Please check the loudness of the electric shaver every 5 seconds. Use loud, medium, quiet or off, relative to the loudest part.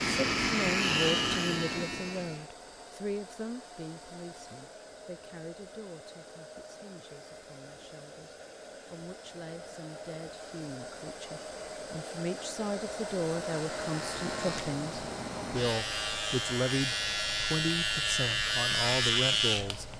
loud, off, medium, loud.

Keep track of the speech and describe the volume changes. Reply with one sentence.
The volume of the speech goes down, then up.